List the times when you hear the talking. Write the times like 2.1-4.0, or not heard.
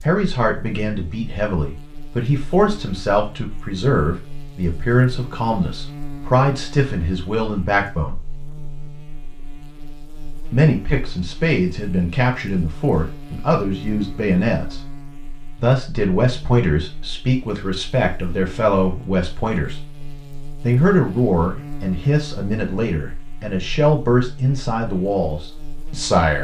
0.0-8.2, 10.5-14.8, 15.6-19.8, 20.6-26.4.